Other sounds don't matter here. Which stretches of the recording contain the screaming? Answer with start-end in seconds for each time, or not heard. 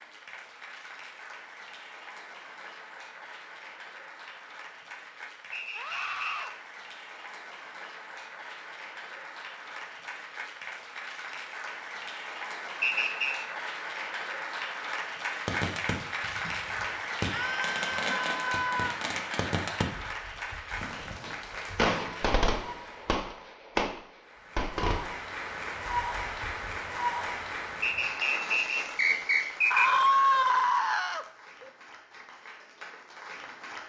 5.8-6.5, 17.3-19.0, 29.7-31.6.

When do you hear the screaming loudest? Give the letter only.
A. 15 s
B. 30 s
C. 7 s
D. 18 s
B.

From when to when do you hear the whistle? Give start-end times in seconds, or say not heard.
5.5-6.5, 12.8-13.3, 27.8-30.1.